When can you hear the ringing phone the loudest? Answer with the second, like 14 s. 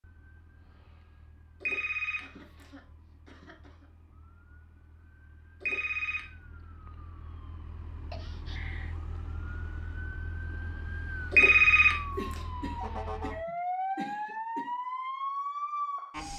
12 s.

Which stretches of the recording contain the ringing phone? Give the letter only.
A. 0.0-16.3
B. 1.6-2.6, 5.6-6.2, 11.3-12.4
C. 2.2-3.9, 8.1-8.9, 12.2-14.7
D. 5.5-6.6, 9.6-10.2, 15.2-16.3
B.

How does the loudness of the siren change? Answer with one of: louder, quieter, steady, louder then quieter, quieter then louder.
louder.